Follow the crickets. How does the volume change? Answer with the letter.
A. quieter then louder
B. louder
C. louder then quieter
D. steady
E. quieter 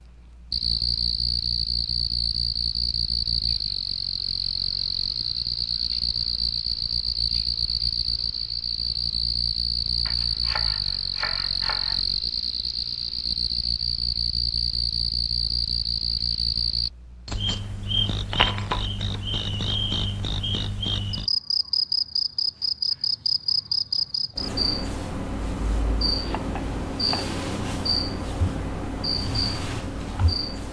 D.